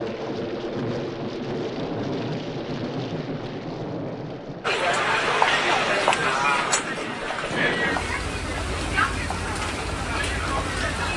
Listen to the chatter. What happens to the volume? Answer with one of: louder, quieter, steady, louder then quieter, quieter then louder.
quieter.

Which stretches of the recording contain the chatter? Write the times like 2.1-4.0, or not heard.
4.6-11.1.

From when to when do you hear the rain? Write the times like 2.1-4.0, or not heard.
0.0-11.1.